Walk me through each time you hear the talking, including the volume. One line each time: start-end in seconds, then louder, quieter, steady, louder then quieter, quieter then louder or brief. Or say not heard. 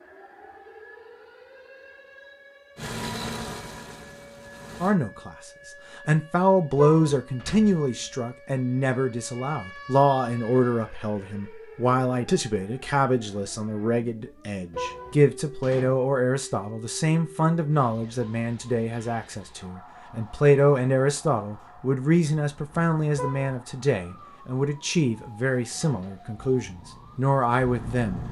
4.8-28.2 steady.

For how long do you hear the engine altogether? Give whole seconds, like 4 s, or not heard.
4 s.